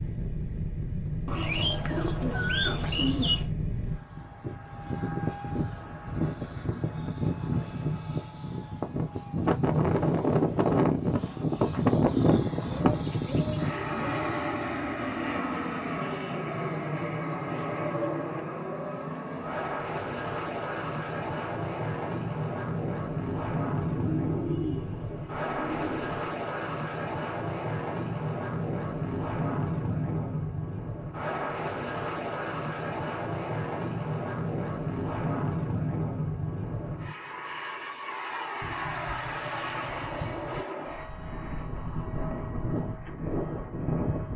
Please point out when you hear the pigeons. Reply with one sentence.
The pigeons can be heard from 1.2 to 3.5 s, from 12.6 to 14.3 s, from 23.8 to 26.2 s and from 38.6 to 40.6 s.